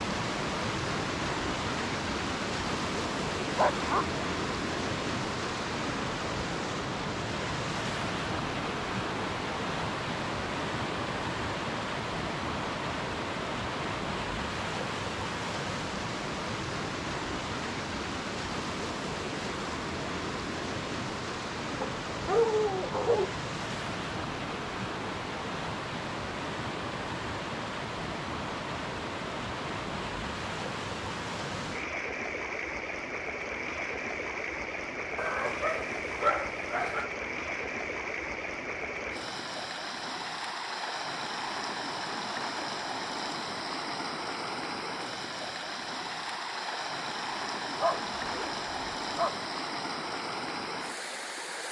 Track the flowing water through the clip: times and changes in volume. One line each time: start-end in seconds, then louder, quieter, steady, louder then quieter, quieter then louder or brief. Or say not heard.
0.0-51.6 steady.